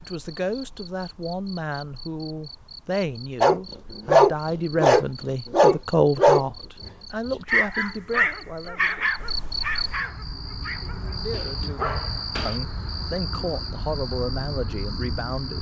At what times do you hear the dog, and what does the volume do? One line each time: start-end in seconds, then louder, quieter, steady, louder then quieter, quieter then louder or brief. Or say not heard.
3.4-12.6 quieter.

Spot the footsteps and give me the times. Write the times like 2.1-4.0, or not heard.
not heard.